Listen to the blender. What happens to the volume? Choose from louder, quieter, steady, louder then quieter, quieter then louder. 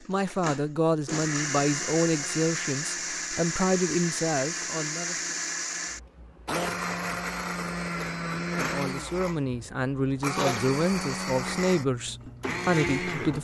steady.